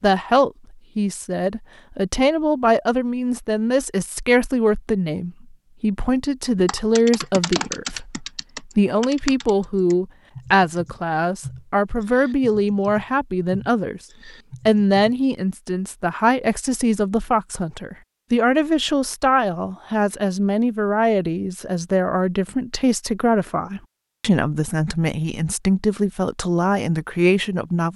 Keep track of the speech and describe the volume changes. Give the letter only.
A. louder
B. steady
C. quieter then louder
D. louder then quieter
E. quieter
B.